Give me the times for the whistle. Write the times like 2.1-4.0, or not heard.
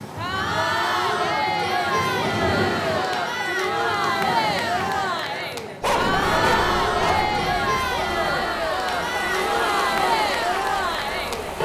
not heard.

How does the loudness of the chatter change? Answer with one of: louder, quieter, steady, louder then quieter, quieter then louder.
steady.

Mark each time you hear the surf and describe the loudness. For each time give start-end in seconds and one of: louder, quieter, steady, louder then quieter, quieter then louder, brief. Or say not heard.
0.0-11.6 steady.